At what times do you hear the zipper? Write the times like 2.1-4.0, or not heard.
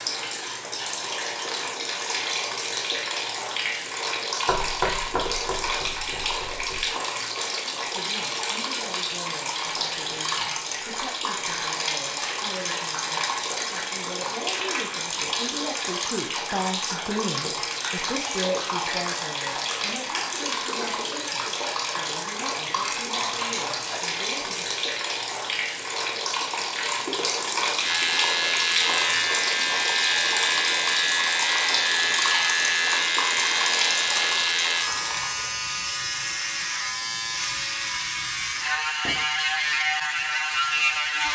not heard.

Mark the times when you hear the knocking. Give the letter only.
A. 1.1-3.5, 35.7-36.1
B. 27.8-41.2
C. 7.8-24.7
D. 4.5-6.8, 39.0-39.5
D.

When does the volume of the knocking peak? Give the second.
5 s.